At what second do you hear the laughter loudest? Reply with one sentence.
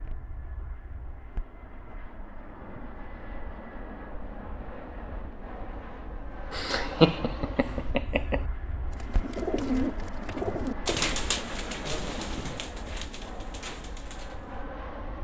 The volume of the laughter peaks at 7 seconds.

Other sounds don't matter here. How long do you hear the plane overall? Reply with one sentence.
The plane can be heard for 15 seconds in total.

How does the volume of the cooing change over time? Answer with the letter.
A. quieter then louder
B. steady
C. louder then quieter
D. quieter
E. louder
D.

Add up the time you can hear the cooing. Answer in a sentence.
You can hear the cooing for 6 seconds altogether.